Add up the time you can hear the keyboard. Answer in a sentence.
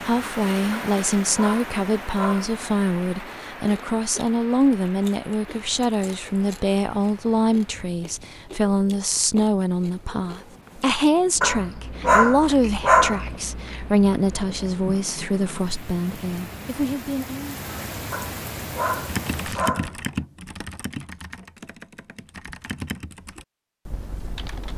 You can hear the keyboard for 6 seconds altogether.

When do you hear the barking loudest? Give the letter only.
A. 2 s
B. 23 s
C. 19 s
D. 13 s
D.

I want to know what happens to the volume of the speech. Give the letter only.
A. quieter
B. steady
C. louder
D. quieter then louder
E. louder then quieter
B.